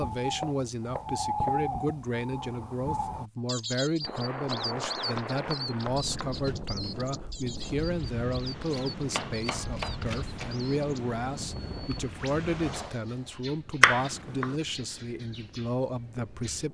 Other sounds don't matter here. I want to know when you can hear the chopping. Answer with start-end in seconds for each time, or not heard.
0.4-1.6, 4.4-6.5, 8.7-10.6, 13.8-14.6.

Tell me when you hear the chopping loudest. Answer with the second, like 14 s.
14 s.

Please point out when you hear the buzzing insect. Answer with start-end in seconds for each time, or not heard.
not heard.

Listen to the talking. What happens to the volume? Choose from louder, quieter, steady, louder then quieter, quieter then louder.
steady.